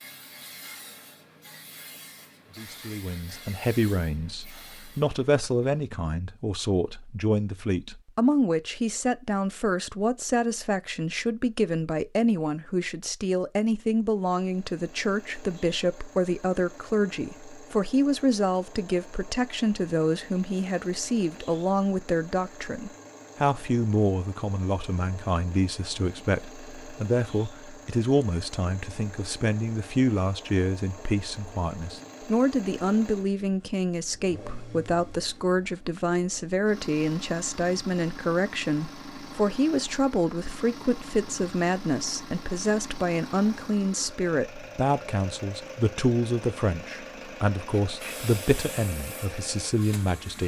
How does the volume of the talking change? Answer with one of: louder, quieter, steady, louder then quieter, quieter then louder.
steady.